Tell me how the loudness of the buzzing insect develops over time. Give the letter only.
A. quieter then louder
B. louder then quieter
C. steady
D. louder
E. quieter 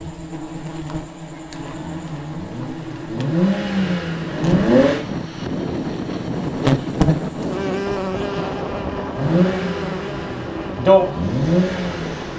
B.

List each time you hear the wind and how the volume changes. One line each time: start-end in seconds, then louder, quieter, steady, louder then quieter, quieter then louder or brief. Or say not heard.
4.0-12.3 quieter.